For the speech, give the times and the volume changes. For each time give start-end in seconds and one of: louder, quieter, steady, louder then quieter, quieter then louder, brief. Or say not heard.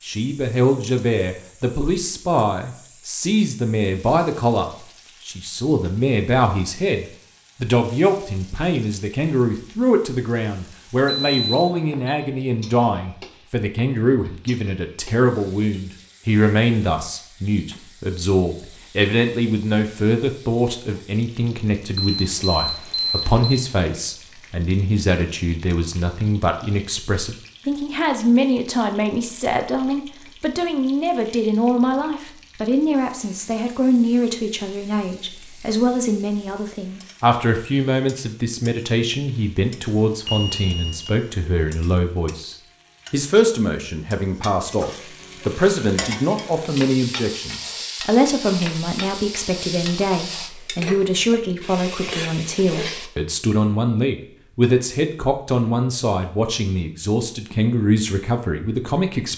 0.0-59.3 steady.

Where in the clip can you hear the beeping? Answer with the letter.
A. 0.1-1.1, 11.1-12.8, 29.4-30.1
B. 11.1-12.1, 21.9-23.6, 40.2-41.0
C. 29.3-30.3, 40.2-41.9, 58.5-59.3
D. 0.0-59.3
B.